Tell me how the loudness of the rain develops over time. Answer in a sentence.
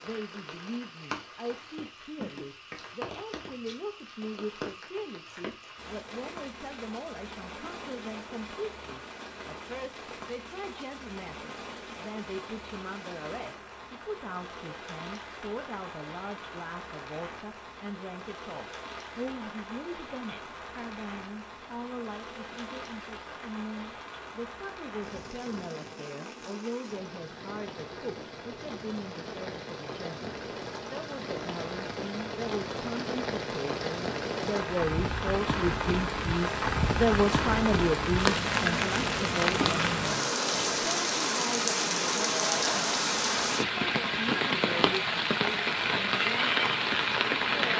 The loudness of the rain goes up.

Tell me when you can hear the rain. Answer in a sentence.
You can hear the rain from 0.0 to 47.7 s.